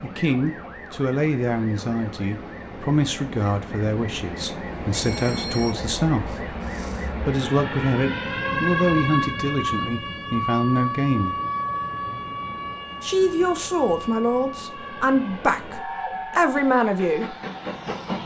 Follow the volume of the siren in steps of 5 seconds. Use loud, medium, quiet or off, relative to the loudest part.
quiet, loud, loud, quiet.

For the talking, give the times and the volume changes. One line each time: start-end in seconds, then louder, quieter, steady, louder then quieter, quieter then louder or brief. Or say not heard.
0.0-11.3 steady
13.0-17.4 quieter then louder.